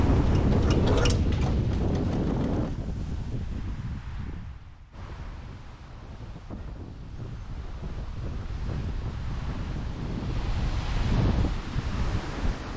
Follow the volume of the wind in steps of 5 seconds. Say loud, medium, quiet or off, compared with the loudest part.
loud, medium, loud.